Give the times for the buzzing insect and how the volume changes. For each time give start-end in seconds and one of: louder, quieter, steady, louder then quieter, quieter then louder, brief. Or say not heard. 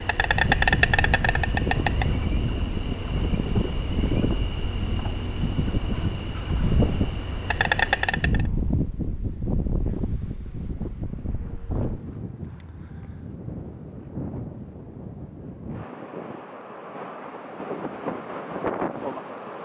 0.0-8.4 steady.